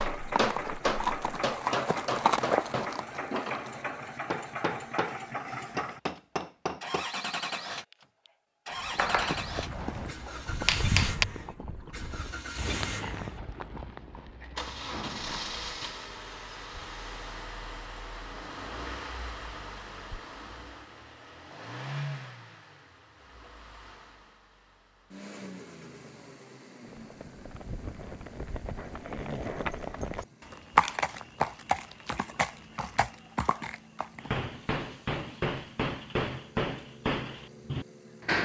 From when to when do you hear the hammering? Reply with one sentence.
You can hear the hammering from 0.0 to 7.0 s, from 8.9 to 11.2 s and from 34.2 to 38.3 s.